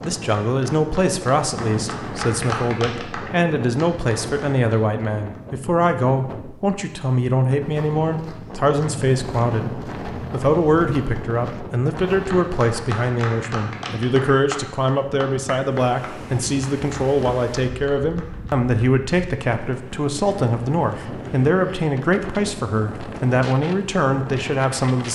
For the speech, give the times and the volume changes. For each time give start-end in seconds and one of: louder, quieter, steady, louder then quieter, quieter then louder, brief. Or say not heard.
0.0-25.1 steady.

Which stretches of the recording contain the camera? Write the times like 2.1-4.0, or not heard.
not heard.